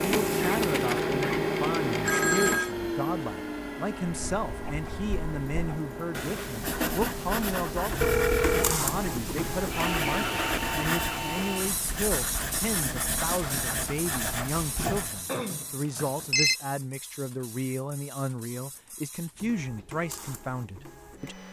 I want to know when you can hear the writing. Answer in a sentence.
You can hear the writing from 4.0 to 15.2 s.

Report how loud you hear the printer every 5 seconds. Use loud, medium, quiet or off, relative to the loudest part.
loud, medium, medium, quiet, quiet.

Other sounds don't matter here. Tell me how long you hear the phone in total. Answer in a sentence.
The phone can be heard for 3 seconds in total.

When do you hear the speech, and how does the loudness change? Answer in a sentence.
You can hear the speech from 0.0 to 21.4 s, at a steady volume.